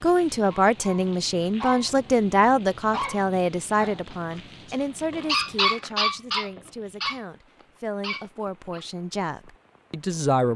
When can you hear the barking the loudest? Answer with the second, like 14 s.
6 s.